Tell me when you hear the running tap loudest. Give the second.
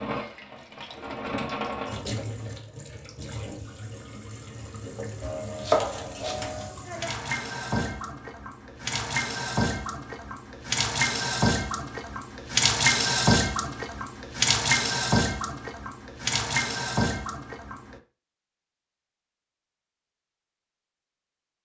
13 s.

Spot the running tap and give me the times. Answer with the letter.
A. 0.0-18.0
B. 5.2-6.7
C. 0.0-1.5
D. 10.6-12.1
A.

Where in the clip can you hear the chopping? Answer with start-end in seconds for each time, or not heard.
5.2-6.7.